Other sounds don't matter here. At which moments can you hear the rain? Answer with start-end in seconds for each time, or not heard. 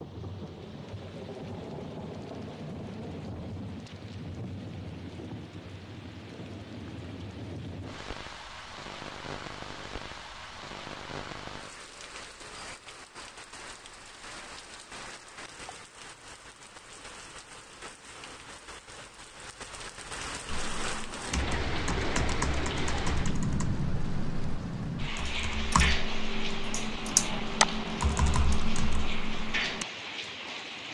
0.0-30.8.